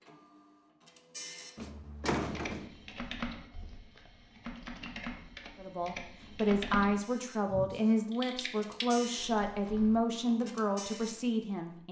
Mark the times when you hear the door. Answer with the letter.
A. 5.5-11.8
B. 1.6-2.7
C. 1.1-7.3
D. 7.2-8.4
B.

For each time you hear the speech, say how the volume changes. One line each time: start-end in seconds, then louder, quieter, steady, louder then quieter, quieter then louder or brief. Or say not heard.
5.5-11.8 steady.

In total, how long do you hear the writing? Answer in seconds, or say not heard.
not heard.